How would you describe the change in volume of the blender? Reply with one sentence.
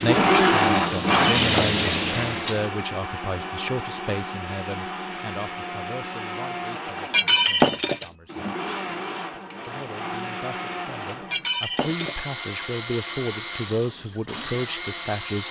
The loudness of the blender goes down.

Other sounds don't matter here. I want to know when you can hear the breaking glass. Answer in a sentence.
The breaking glass can be heard from 1.1 to 1.8 s, from 7.1 to 8.1 s and from 11.3 to 12.2 s.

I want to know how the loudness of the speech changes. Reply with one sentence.
The loudness of the speech goes down, then up.